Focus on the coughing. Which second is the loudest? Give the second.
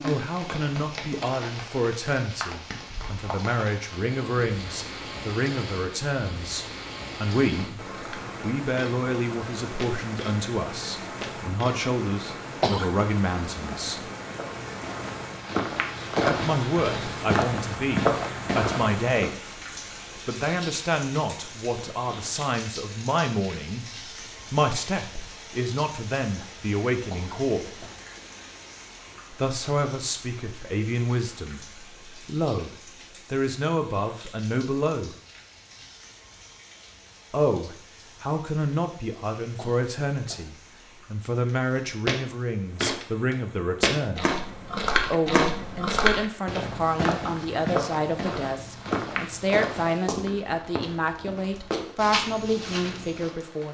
13 s.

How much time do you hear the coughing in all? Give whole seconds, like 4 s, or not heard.
2 s.